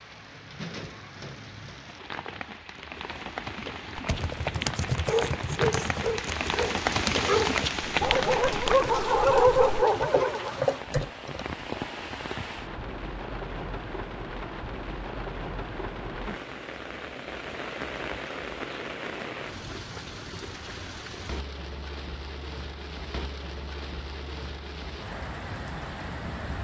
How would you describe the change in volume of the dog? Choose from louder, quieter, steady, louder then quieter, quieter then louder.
louder.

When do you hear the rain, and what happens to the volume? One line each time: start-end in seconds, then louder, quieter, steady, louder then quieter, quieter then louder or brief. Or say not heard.
0.0-26.5 louder then quieter.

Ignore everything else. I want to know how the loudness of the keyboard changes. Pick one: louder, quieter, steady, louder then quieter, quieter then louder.
quieter then louder.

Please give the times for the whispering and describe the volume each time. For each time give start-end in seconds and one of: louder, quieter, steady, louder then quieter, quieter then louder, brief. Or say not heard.
not heard.